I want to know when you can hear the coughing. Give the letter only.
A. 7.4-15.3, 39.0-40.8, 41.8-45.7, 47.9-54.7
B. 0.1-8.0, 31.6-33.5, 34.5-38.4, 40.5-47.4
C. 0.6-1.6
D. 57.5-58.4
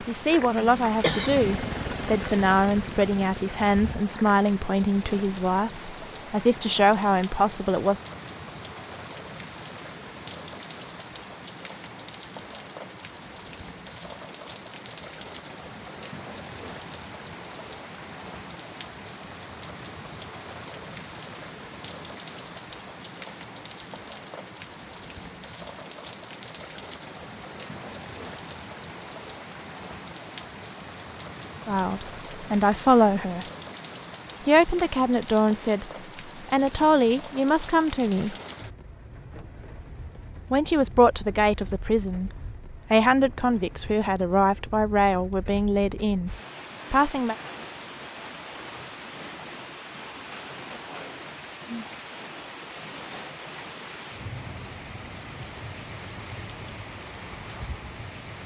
C.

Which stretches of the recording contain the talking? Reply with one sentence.
You can hear the talking from 0.1 to 8.0 s, from 31.6 to 33.5 s, from 34.5 to 38.4 s and from 40.5 to 47.4 s.